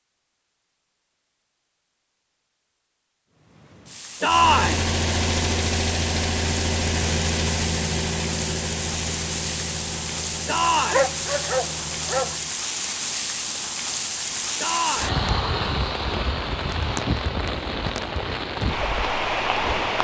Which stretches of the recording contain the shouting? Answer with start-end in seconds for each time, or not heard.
4.2-4.8, 10.4-11.1, 14.6-15.2.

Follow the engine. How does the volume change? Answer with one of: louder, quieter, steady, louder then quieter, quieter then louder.
quieter.